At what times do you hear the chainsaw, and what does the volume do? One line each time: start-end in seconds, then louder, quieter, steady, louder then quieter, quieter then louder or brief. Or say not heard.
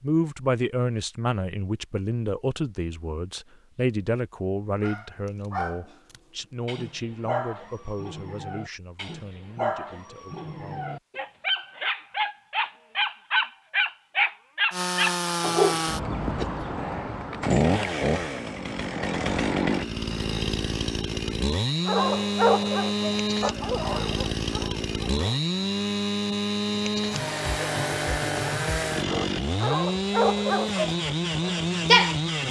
14.7-32.4 steady.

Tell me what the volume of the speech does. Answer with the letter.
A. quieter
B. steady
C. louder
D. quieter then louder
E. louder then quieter
A.